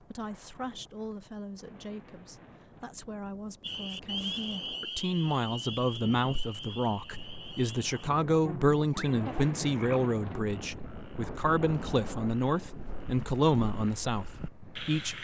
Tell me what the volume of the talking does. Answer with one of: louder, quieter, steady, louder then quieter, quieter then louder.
louder.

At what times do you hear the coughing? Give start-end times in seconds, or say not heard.
not heard.